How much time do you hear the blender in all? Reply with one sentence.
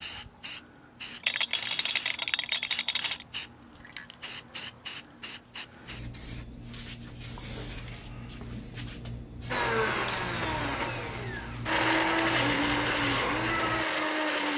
The blender can be heard for 5 seconds in total.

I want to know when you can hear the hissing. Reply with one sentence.
The hissing can be heard from 0.0 to 14.5 s.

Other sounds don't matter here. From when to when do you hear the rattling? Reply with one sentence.
The rattling can be heard from 1.2 to 3.2 s.